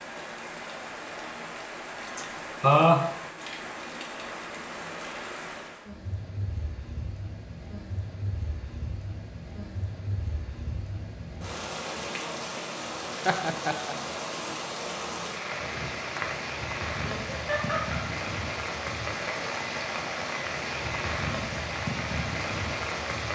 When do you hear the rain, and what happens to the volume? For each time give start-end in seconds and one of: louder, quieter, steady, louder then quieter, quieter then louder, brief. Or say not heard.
0.0-23.2 louder.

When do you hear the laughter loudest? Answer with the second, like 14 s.
3 s.